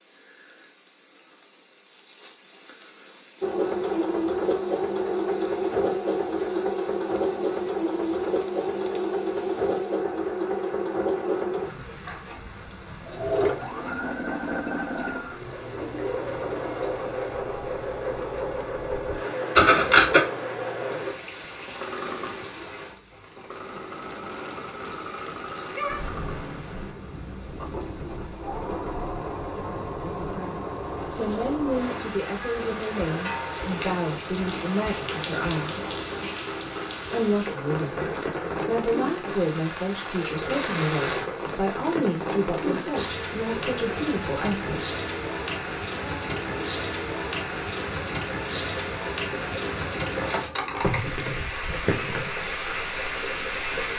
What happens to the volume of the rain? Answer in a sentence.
The loudness of the rain goes up.